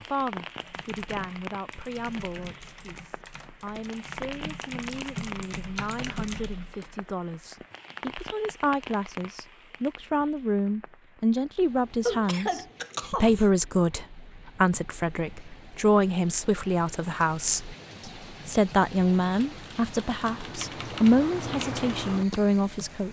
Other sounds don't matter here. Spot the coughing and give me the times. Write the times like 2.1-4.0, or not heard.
12.1-13.4.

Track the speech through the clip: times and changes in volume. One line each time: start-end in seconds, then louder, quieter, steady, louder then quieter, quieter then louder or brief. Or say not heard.
0.1-23.0 louder.